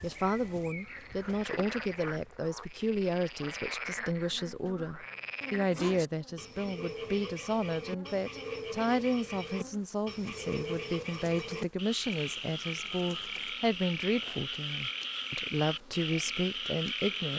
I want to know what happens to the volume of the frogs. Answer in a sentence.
The volume of the frogs goes up.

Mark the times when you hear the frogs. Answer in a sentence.
The frogs can be heard from 0.0 to 17.3 s.